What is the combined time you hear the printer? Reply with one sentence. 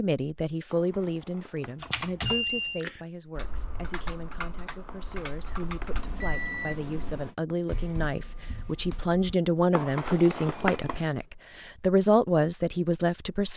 You can't hear the printer here.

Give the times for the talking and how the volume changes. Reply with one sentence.
You can hear the talking from 0.0 to 13.5 s, getting quieter then louder.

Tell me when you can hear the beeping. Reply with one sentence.
You can hear the beeping from 1.9 to 2.9 s, from 5.9 to 7.3 s and from 10.6 to 11.3 s.